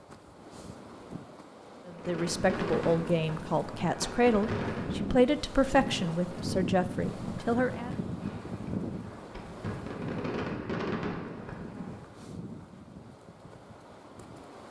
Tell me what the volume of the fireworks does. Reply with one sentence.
The volume of the fireworks goes down, then up.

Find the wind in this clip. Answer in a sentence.
You can hear the wind from 0.0 to 14.6 s.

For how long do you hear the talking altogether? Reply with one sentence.
You can hear the talking for 6 seconds altogether.